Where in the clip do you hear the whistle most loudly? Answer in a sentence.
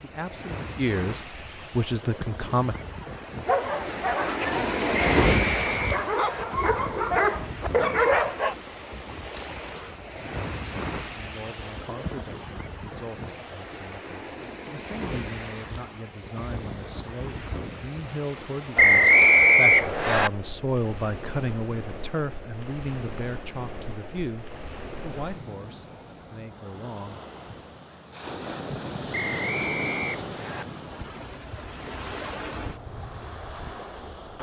The loudest moment of the whistle is at 19 seconds.